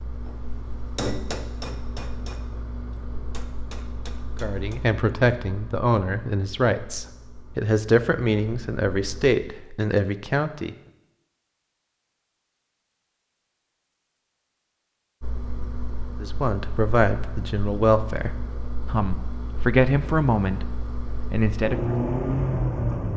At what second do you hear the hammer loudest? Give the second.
1 s.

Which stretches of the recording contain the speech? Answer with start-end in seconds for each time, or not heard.
4.4-10.8, 16.2-20.6, 21.3-21.9.